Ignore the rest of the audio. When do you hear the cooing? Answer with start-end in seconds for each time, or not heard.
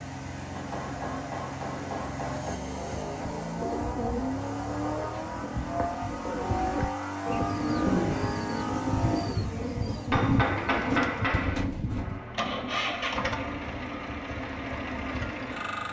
3.0-12.2.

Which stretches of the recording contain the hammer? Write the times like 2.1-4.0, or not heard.
0.6-2.5, 10.1-11.7.